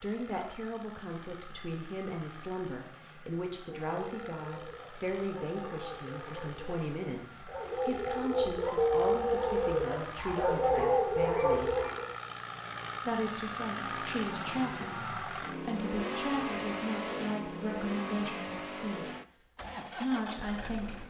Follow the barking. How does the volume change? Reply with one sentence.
The loudness of the barking goes up.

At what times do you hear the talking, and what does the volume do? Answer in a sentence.
The talking can be heard from 0.0 to 11.8 s, at a steady volume; from 13.1 to 19.1 s, at a steady volume; and briefly from 19.9 to 21.0 s.